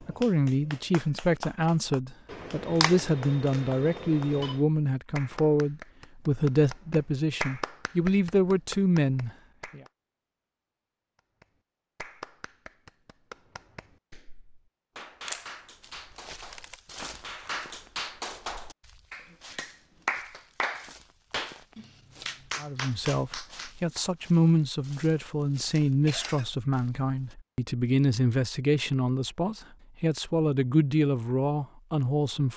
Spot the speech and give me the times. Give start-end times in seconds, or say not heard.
0.1-9.8, 22.6-32.5.